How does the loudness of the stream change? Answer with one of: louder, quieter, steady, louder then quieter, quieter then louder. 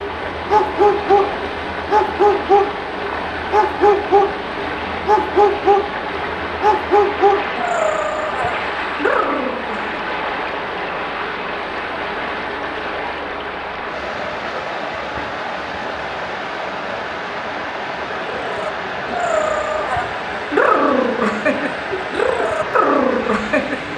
steady.